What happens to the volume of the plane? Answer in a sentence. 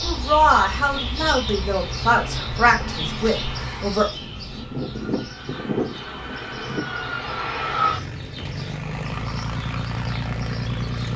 The loudness of the plane goes up.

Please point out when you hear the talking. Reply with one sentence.
The talking can be heard from 0.0 to 4.1 s.